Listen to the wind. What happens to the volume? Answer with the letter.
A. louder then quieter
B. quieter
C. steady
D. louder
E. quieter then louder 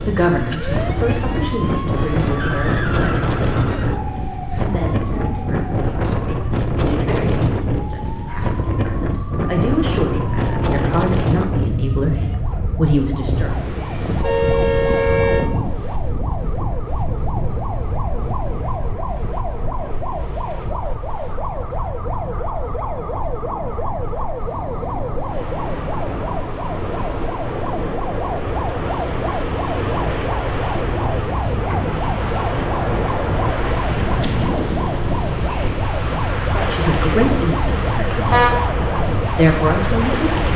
E.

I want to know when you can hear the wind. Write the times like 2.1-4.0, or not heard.
0.0-40.5.